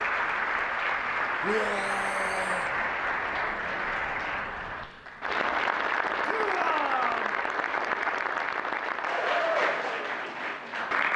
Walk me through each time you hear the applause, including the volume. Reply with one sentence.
The applause can be heard from 0.0 to 11.1 s, at a steady volume.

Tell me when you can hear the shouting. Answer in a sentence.
You can hear the shouting from 1.4 to 2.7 s and from 6.2 to 7.3 s.